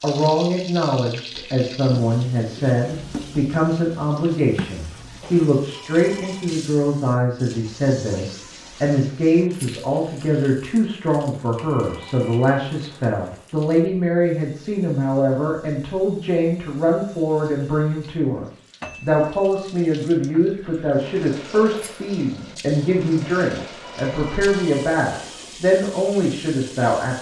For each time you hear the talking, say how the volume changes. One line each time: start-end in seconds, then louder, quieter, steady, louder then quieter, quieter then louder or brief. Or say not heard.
0.0-27.1 steady.